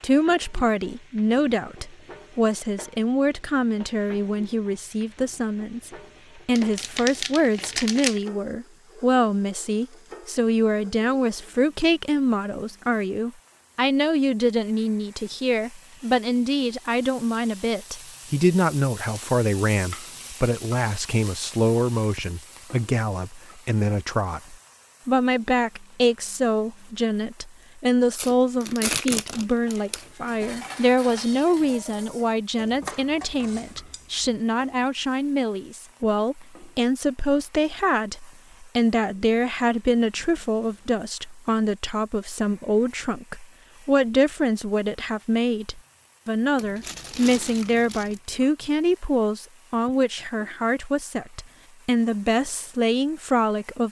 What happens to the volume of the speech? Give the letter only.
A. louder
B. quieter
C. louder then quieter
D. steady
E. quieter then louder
D.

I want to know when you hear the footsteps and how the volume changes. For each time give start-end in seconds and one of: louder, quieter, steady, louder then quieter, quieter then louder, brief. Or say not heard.
not heard.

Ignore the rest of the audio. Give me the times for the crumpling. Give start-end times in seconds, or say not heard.
6.5-8.2, 28.1-30.1, 46.5-48.2.